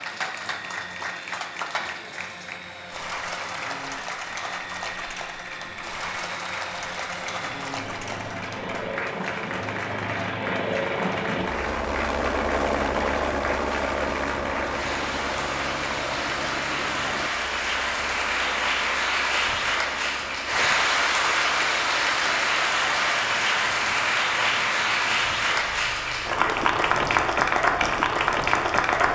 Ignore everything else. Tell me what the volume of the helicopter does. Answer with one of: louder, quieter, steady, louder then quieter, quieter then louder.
louder then quieter.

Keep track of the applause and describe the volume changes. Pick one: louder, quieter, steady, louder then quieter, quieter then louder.
louder.